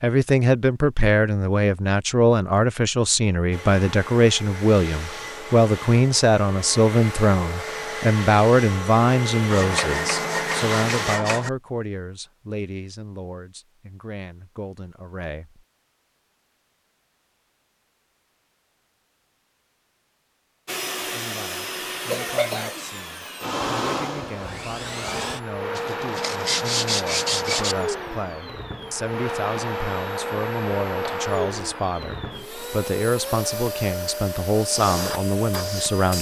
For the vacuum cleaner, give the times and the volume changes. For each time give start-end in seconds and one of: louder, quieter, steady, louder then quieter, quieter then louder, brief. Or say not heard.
3.5-11.2 louder
20.6-36.1 steady.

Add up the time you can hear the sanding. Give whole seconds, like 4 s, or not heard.
4 s.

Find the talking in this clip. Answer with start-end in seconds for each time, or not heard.
0.0-15.6, 21.0-36.1.